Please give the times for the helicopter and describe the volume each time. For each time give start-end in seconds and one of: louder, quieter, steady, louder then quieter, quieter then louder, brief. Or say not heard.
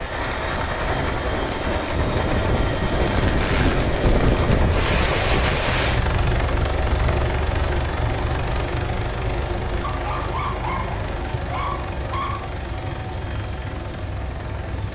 0.0-14.9 quieter.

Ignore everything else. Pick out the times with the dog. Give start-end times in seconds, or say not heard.
9.8-12.5.